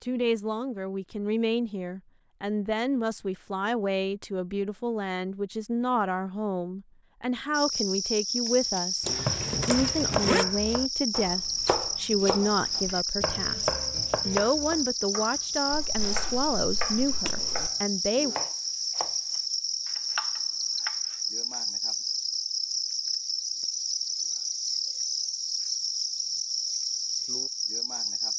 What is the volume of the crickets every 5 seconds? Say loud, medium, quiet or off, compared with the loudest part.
off, loud, loud, loud, loud, loud.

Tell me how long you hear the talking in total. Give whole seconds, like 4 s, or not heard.
18 s.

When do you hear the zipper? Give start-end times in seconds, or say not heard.
9.0-10.4, 15.8-17.7.